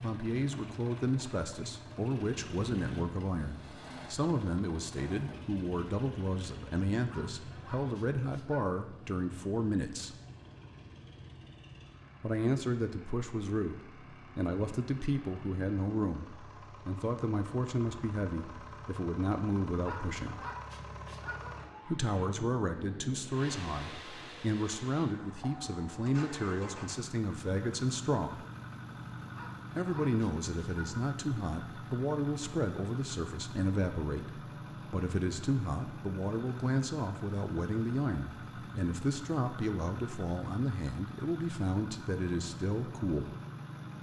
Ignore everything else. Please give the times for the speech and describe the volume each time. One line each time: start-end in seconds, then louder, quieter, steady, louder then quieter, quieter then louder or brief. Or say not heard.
0.0-10.2 steady
12.2-20.4 steady
21.9-28.4 steady
29.8-43.4 steady.